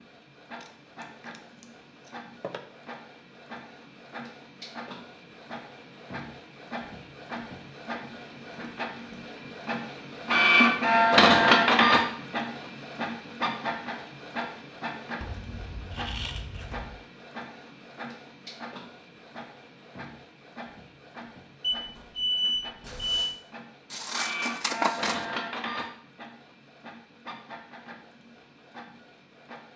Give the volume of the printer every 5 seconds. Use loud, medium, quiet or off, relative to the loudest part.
quiet, quiet, loud, quiet, quiet, quiet.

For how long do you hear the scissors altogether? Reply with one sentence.
You can hear the scissors for 5 seconds altogether.